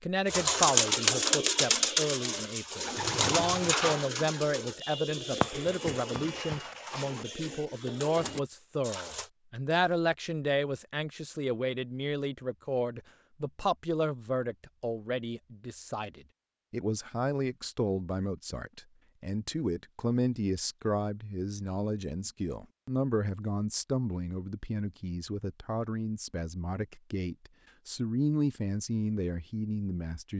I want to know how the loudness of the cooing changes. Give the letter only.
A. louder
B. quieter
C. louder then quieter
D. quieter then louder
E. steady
B.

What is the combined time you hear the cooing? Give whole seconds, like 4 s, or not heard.
9 s.